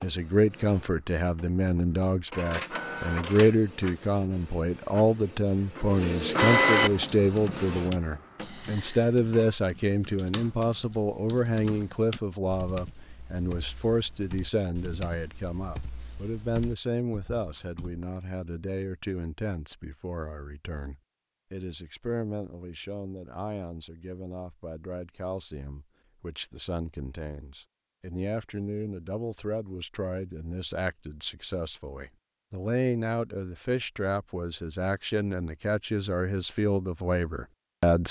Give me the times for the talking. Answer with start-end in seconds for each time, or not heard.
0.0-38.0.